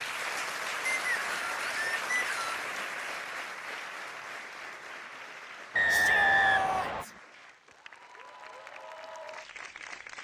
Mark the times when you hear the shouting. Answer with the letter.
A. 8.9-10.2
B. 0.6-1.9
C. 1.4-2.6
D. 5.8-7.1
D.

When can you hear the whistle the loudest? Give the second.
6 s.